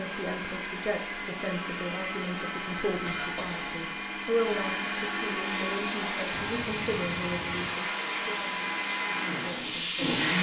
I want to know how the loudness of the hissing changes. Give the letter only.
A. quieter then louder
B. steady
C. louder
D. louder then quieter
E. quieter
B.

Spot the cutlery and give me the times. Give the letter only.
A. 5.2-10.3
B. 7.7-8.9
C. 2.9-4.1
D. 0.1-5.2
C.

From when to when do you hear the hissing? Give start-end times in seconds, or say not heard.
5.2-10.3.